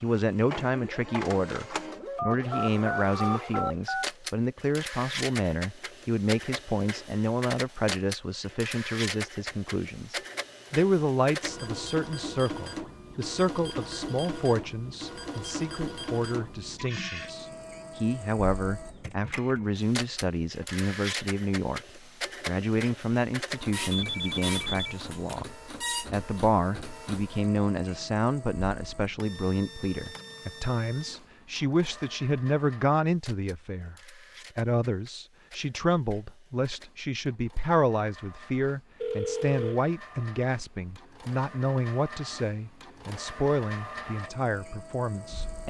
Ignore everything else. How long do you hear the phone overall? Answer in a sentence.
The phone can be heard for 4 seconds in total.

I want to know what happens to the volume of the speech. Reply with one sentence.
The loudness of the speech stays about the same.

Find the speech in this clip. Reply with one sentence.
You can hear the speech from 0.0 to 25.5 s, from 26.1 to 34.0 s and from 34.5 to 45.6 s.